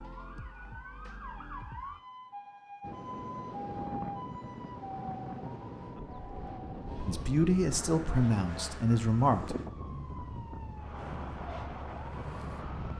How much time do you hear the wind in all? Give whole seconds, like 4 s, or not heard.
10 s.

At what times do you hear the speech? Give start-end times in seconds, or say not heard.
7.0-9.6.